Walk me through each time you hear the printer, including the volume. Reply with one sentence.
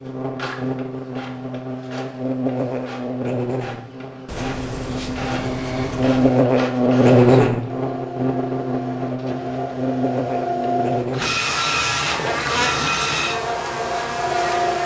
You can hear the printer from 0.0 to 14.8 s, getting louder.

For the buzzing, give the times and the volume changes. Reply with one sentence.
The buzzing can be heard from 0.0 to 14.8 s, getting louder then quieter.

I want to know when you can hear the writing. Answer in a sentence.
You can hear the writing from 4.2 to 6.4 s.